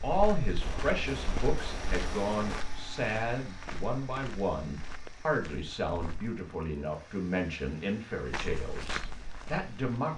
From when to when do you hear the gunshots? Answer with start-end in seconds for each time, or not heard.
0.6-2.6.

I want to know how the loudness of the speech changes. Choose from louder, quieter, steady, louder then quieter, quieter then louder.
steady.